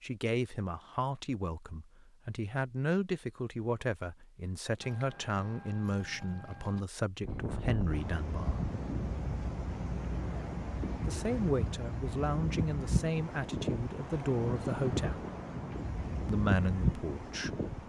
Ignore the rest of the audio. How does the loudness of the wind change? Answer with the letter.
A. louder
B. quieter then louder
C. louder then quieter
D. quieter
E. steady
E.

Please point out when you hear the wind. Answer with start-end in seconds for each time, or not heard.
7.2-17.8.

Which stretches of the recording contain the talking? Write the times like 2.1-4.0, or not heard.
0.0-8.7, 11.1-15.2, 16.2-17.6.